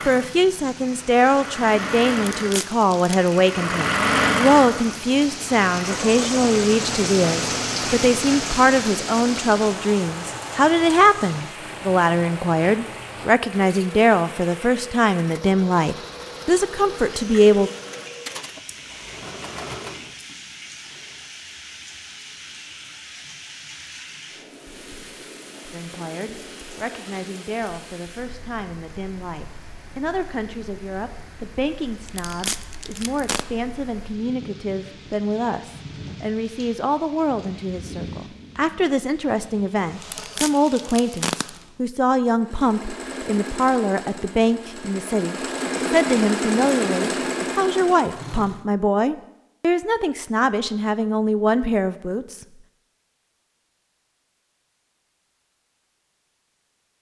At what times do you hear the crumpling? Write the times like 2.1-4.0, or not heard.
2.1-3.4, 32.0-33.5, 40.0-41.5.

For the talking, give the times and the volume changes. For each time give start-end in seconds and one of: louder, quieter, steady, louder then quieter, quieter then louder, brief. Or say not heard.
0.1-17.7 steady
25.7-52.5 louder.